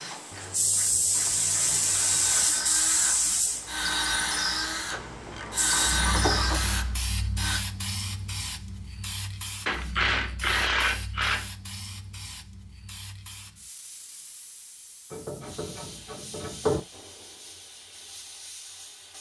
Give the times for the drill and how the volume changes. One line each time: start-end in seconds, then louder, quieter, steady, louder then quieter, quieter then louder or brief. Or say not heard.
0.0-7.6 louder.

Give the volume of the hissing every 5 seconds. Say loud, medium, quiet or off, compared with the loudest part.
loud, medium, quiet, quiet.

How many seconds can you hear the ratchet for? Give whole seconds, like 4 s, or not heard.
8 s.